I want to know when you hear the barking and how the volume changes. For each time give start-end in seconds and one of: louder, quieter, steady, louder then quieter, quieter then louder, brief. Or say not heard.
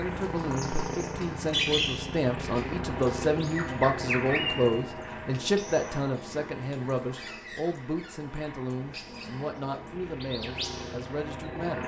not heard.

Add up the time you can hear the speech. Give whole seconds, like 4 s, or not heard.
12 s.